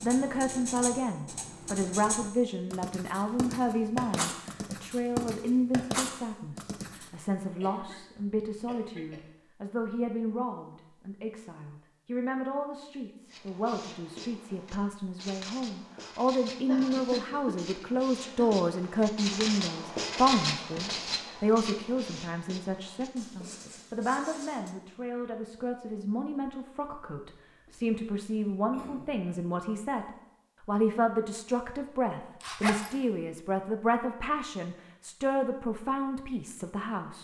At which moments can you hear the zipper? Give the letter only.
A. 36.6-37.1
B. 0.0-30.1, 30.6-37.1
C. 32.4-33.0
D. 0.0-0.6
C.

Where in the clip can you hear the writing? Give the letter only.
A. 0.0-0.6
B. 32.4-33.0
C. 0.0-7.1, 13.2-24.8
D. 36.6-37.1
C.